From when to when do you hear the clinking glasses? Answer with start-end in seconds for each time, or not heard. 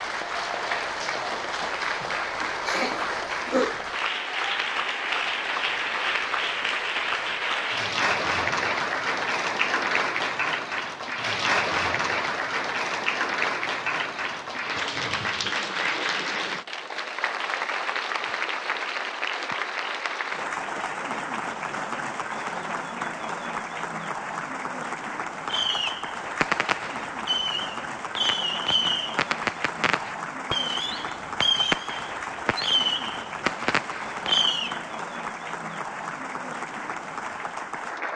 not heard.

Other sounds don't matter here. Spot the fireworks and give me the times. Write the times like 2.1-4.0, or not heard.
25.4-34.8.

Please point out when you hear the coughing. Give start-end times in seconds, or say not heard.
2.4-3.8.